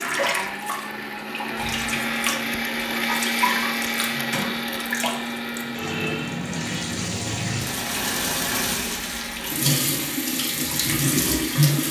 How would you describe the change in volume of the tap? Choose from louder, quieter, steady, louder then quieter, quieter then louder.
louder.